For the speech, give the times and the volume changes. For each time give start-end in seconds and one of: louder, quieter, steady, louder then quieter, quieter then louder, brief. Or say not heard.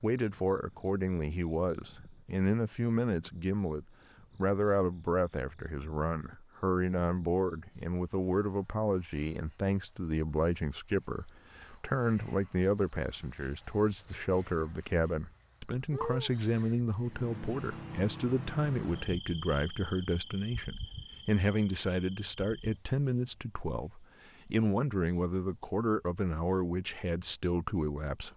0.0-28.3 steady.